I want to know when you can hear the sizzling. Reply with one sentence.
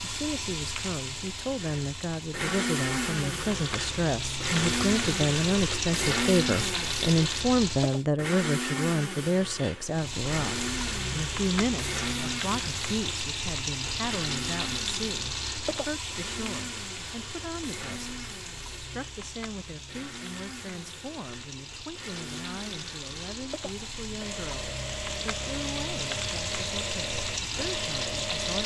The sizzling can be heard from 0.0 to 8.1 s and from 9.8 to 28.6 s.